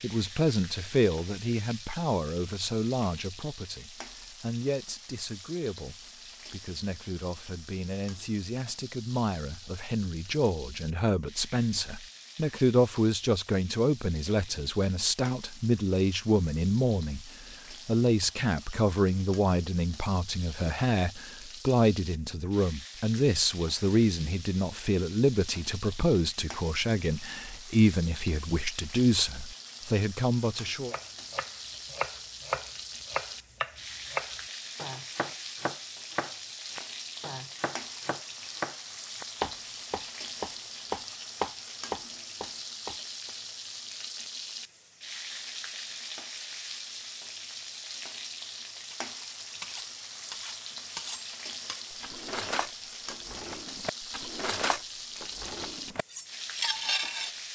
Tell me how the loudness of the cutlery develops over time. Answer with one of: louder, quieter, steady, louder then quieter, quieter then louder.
louder.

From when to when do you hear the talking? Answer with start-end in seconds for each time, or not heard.
0.0-30.9.